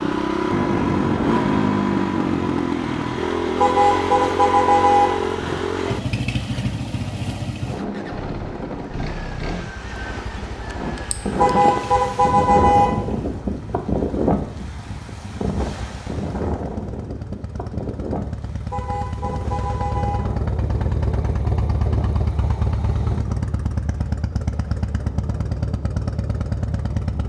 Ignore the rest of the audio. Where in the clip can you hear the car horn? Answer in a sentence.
The car horn can be heard from 3.5 to 5.1 s, from 11.3 to 12.8 s and from 18.7 to 20.2 s.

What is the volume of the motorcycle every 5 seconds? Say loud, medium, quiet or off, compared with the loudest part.
loud, medium, quiet, quiet, medium, medium.